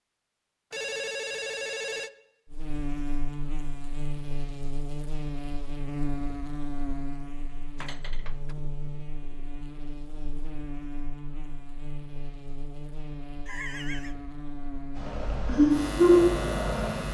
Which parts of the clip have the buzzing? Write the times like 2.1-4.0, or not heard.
2.5-17.0.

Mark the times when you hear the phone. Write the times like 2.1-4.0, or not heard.
0.7-2.1, 7.8-8.6, 13.4-14.2.